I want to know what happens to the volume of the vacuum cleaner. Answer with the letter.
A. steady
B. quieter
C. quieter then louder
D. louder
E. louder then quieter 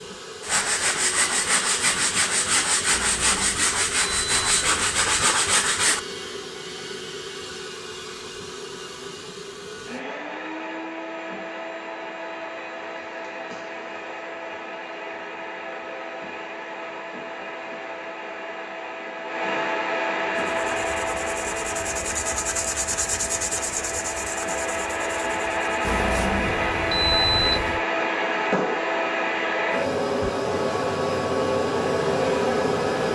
D.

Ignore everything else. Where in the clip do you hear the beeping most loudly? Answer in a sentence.
The volume of the beeping peaks at 27 seconds.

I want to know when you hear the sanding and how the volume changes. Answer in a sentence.
You can hear the sanding from 0.4 to 6.0 s, at a steady volume; and from 20.3 to 26.0 s, getting louder then quieter.